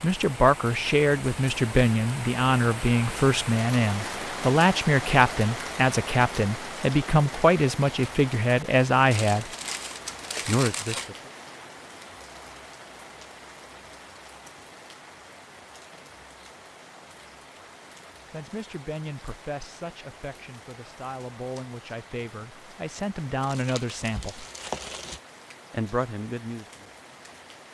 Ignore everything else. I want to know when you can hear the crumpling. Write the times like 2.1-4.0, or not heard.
9.1-11.1, 23.4-25.2.